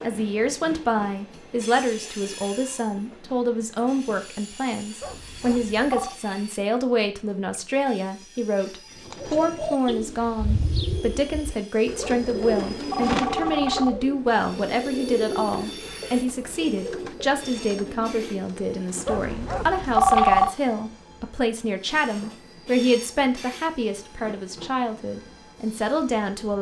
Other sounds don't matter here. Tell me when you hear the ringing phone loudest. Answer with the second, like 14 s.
20 s.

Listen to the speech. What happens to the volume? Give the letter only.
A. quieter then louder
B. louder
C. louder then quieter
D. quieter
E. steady
E.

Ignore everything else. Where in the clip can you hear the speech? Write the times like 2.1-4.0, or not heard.
0.0-26.5.